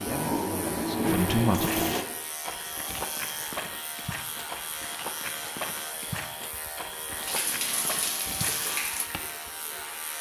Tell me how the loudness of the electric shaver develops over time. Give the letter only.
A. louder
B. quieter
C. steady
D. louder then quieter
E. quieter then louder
C.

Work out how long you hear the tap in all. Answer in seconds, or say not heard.
5 s.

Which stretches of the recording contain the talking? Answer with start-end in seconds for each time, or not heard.
0.0-1.9.